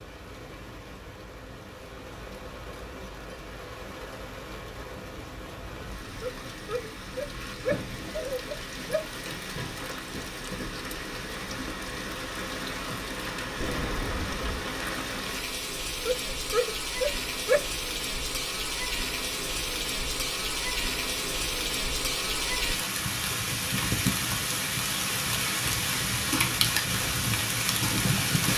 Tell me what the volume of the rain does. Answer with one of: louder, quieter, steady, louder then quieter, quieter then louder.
louder.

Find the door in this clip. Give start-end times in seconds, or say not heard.
13.6-14.6.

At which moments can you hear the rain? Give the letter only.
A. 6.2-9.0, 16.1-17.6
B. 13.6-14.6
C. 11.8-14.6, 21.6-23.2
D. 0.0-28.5
D.